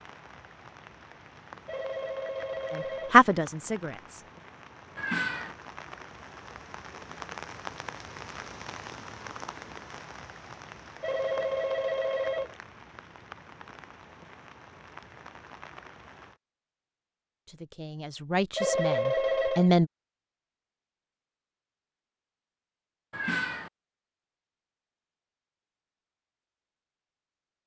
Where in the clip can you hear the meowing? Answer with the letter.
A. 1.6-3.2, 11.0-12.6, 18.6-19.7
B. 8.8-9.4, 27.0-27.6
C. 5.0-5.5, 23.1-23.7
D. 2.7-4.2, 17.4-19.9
C.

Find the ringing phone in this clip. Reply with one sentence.
The ringing phone can be heard from 1.6 to 3.2 s, from 11.0 to 12.6 s and from 18.6 to 19.7 s.